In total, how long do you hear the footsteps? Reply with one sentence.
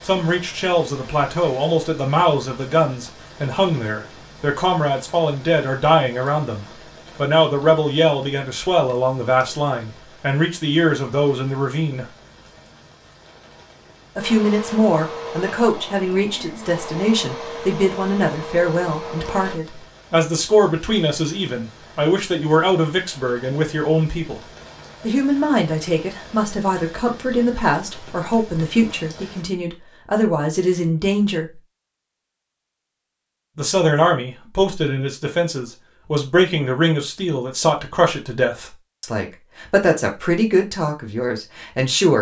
You can't hear the footsteps here.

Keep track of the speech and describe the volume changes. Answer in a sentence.
The volume of the speech stays about the same.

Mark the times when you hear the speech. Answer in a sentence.
You can hear the speech from 0.0 to 12.1 s, from 14.2 to 24.4 s, from 25.0 to 31.6 s and from 33.5 to 42.1 s.